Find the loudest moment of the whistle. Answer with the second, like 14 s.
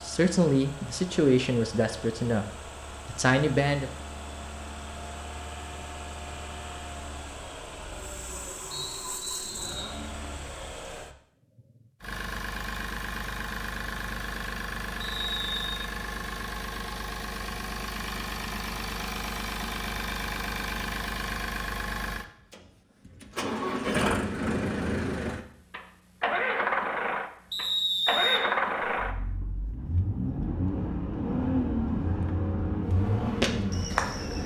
28 s.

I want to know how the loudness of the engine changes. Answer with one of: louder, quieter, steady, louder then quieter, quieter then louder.
louder.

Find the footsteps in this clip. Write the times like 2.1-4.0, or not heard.
33.4-34.4.